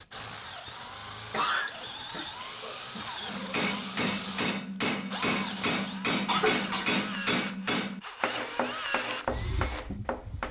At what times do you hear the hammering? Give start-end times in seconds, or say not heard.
3.2-10.4.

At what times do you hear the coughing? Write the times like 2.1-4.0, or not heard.
1.3-3.3, 6.2-7.0.